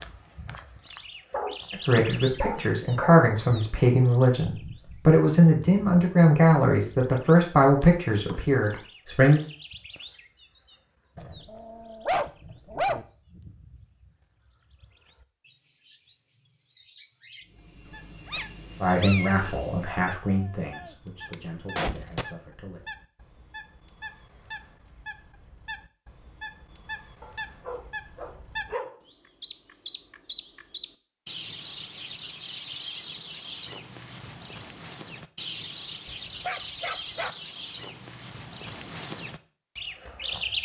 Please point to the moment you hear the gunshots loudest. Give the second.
22 s.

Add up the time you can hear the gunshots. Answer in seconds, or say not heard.
2 s.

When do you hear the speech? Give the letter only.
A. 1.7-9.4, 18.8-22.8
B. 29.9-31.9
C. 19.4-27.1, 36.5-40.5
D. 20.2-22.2
A.